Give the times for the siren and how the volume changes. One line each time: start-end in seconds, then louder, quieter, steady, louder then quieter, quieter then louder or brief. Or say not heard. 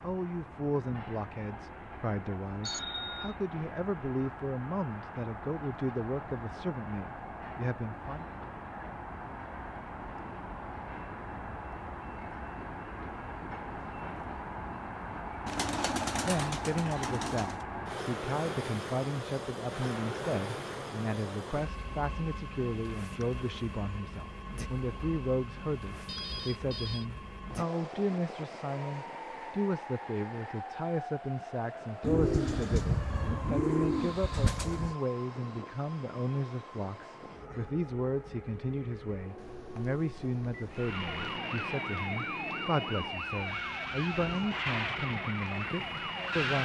40.7-46.6 steady.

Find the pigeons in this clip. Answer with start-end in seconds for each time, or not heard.
15.4-17.6, 32.0-35.0.